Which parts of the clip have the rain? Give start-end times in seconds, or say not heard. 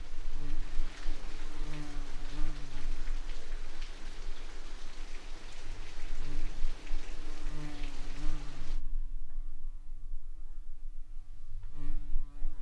0.0-8.8.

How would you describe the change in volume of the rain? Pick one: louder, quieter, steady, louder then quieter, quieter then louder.
steady.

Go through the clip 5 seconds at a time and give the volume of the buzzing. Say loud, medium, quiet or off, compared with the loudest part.
loud, loud, medium.